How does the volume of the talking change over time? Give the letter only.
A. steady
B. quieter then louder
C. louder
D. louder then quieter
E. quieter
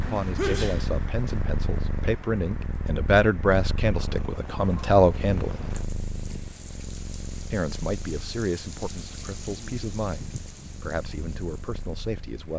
D.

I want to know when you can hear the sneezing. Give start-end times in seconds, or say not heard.
0.3-0.8.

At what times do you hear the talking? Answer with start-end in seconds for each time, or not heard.
0.1-5.7, 7.5-12.5.